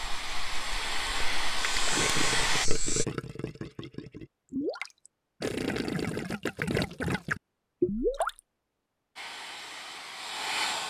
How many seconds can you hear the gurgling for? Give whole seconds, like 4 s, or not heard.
7 s.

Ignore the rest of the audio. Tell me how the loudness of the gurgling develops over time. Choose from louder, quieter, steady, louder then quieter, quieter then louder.
quieter then louder.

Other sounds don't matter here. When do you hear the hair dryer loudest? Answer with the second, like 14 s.
2 s.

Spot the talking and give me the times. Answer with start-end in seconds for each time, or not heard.
not heard.